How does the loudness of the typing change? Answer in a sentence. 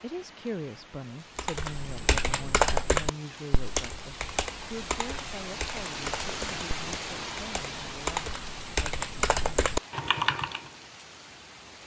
The loudness of the typing goes down, then up.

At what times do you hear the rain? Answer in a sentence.
You can hear the rain from 0.0 to 11.8 s.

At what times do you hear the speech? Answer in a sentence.
You can hear the speech from 0.0 to 9.6 s.